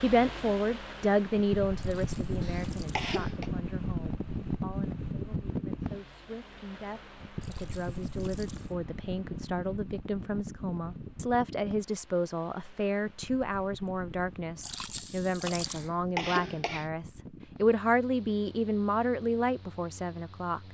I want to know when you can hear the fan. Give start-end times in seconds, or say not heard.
0.0-20.7.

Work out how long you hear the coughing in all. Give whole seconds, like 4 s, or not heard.
2 s.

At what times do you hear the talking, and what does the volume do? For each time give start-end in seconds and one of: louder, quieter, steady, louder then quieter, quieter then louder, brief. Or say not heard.
0.0-20.6 quieter then louder.